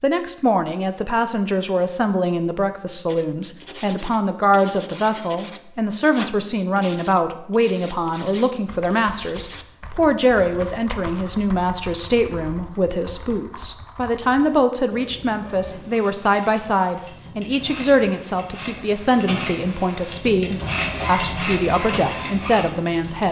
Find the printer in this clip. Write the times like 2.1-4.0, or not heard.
14.8-23.2.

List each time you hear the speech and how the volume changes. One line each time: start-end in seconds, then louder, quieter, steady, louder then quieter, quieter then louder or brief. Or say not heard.
0.0-23.2 steady.